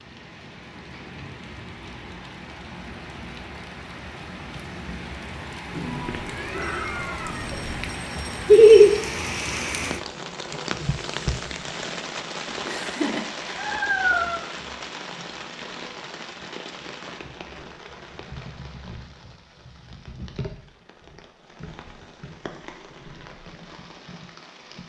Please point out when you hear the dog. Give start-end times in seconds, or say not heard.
not heard.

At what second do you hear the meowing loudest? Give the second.
14 s.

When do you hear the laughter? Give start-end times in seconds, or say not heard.
8.5-8.9, 12.7-13.5.